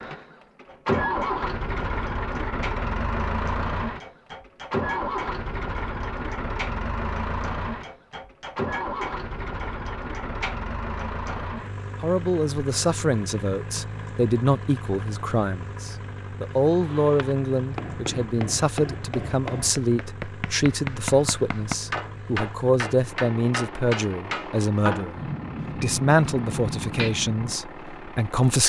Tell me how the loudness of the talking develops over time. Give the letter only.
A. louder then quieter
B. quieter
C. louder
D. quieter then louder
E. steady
E.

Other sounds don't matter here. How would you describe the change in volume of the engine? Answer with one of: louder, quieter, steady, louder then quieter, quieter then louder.
quieter.